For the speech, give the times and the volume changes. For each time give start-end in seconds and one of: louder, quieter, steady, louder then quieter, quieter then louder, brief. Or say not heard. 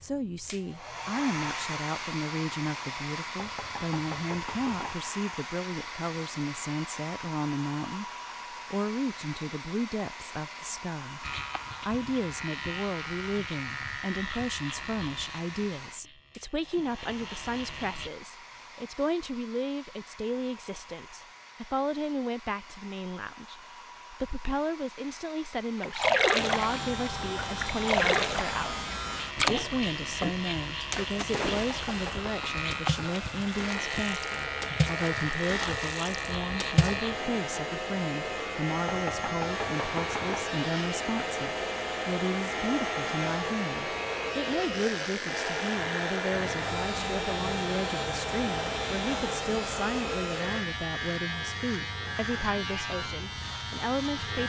0.0-54.4 steady.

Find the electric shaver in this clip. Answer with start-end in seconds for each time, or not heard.
11.2-18.1, 26.4-54.4.